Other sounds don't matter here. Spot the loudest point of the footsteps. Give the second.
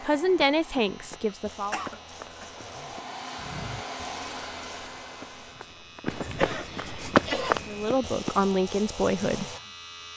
7 s.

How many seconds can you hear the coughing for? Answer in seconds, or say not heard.
3 s.